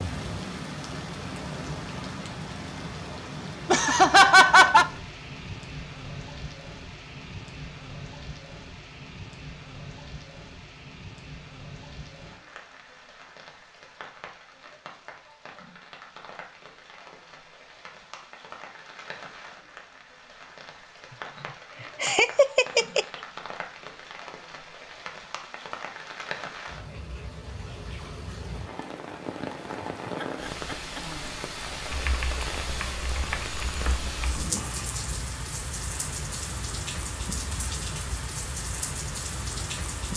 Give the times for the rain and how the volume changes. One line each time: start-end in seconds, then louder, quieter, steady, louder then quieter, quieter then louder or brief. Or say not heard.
0.0-40.1 quieter then louder.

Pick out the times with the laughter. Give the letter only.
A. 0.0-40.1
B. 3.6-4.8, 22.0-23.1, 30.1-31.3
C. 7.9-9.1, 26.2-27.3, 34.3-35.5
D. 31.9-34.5
B.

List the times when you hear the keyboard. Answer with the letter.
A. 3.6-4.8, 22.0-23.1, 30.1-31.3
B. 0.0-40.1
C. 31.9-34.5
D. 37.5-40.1
C.